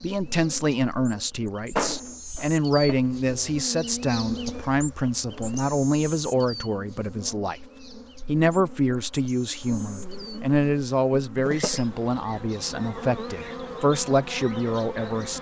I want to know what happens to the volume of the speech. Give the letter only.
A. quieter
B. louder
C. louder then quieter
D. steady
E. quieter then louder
D.